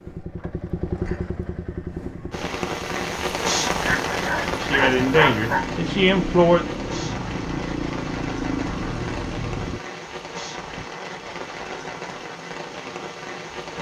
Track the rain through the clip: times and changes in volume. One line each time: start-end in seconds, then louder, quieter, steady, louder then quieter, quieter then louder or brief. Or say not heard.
2.3-13.7 quieter.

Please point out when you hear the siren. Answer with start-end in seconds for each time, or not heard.
not heard.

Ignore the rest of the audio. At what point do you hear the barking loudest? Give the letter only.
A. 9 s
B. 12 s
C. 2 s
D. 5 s
D.